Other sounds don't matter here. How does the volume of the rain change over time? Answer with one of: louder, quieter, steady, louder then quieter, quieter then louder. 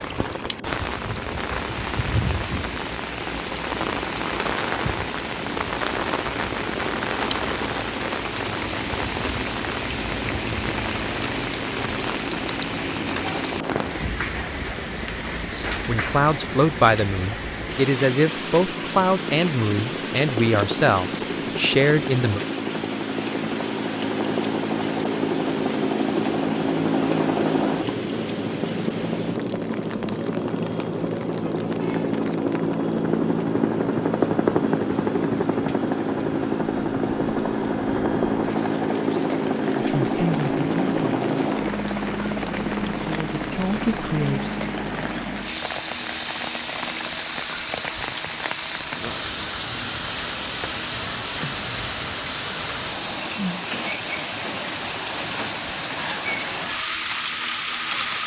quieter then louder.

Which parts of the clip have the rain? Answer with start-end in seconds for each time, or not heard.
0.0-58.2.